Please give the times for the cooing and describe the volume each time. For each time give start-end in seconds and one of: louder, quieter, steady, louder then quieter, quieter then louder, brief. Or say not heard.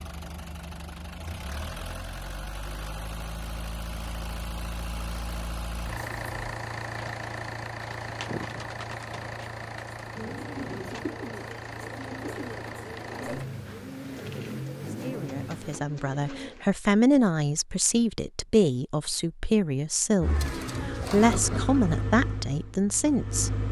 6.9-16.6 steady.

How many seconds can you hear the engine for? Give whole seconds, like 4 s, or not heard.
19 s.